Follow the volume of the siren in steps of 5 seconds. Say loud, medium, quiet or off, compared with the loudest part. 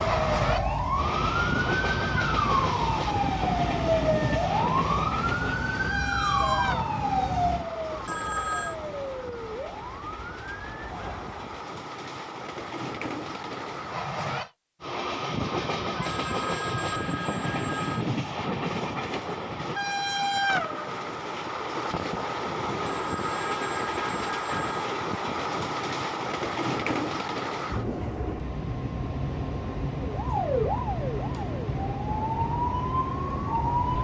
loud, loud, quiet, off, off, off, loud.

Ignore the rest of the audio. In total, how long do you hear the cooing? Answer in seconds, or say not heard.
not heard.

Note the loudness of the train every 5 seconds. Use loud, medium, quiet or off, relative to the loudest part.
loud, medium, medium, loud, loud, loud, loud.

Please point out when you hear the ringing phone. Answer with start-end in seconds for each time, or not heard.
8.1-8.8, 16.0-18.1, 22.9-24.9.